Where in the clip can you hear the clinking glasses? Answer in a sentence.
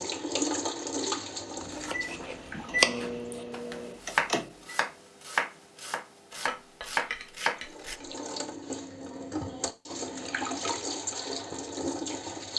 The clinking glasses can be heard from 6.3 to 8.2 s.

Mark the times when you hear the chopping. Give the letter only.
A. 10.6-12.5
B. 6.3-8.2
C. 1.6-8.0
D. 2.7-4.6
C.